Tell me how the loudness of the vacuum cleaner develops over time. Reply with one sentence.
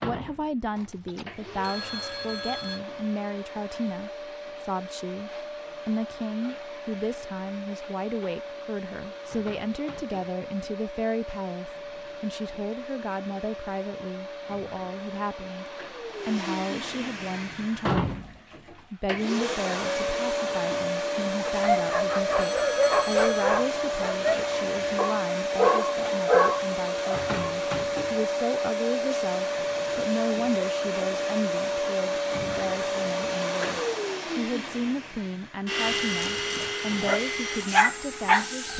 The loudness of the vacuum cleaner goes up.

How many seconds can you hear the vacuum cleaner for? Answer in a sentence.
The vacuum cleaner can be heard for 39 seconds in total.